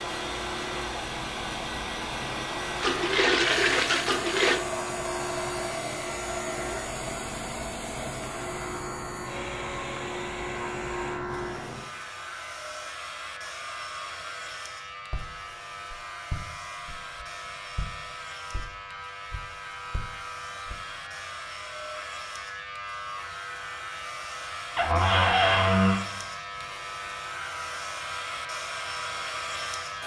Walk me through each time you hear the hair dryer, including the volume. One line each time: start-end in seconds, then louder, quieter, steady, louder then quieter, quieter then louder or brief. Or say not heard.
0.0-30.0 quieter then louder.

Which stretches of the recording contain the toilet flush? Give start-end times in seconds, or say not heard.
2.8-4.6.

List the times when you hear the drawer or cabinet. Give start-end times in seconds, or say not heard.
24.8-26.0.